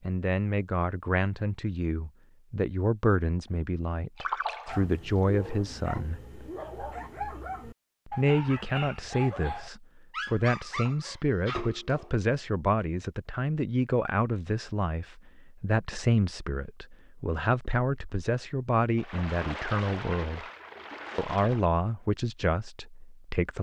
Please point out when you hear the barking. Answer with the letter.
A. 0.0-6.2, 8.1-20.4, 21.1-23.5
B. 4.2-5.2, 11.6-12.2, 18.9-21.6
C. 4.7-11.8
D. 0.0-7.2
C.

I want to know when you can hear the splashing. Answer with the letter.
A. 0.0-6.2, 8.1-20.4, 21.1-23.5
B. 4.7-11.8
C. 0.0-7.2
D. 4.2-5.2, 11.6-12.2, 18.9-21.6
D.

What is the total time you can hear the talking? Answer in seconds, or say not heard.
21 s.